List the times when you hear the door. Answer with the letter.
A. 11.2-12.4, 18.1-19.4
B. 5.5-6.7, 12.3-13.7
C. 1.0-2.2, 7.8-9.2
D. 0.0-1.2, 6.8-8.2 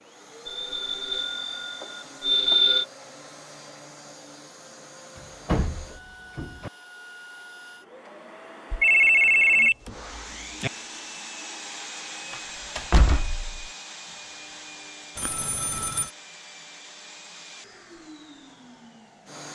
B.